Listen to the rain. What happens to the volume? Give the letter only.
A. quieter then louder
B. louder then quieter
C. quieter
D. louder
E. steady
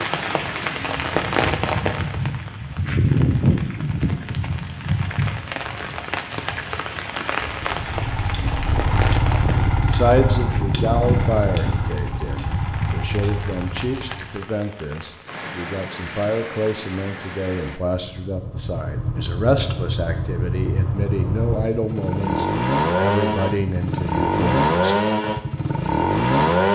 C.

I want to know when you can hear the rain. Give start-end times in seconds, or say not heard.
0.0-17.8.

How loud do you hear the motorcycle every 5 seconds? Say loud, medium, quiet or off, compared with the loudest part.
off, medium, medium, medium, loud, loud.